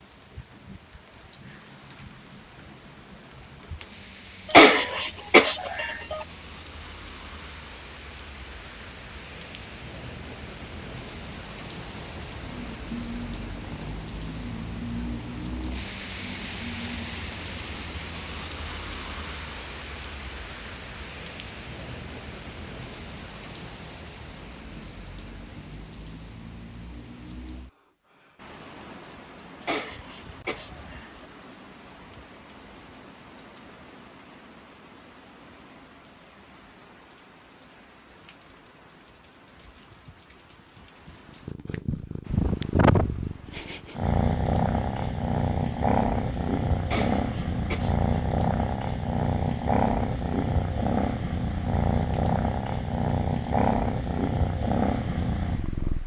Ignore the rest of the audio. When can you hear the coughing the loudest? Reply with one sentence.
The volume of the coughing peaks at 5 seconds.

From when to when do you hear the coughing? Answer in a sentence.
You can hear the coughing from 4.5 to 6.2 s, from 29.6 to 31.1 s and from 46.9 to 48.2 s.